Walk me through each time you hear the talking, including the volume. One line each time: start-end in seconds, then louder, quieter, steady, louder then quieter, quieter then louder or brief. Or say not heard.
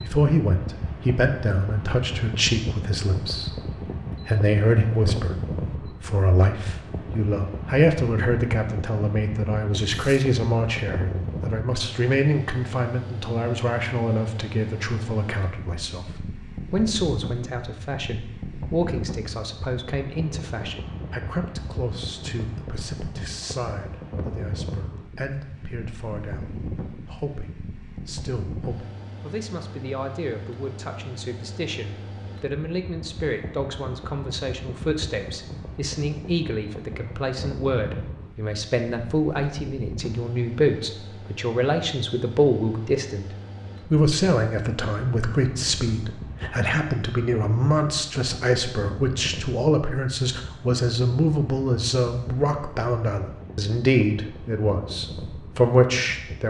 0.0-56.4 quieter then louder.